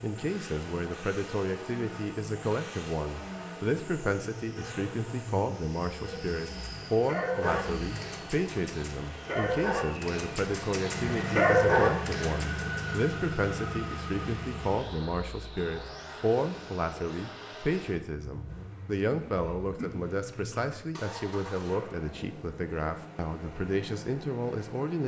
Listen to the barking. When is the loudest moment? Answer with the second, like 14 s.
12 s.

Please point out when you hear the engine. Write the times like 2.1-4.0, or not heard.
0.0-25.0.